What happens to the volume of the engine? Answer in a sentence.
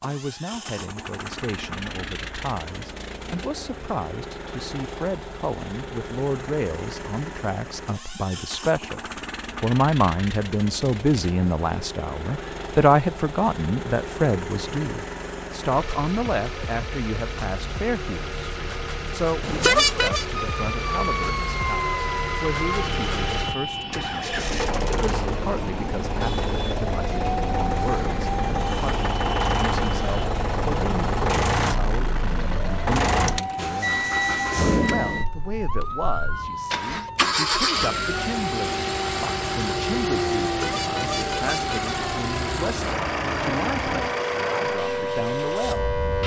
The volume of the engine goes up.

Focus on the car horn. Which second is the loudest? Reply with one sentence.
The volume of the car horn peaks at 20 seconds.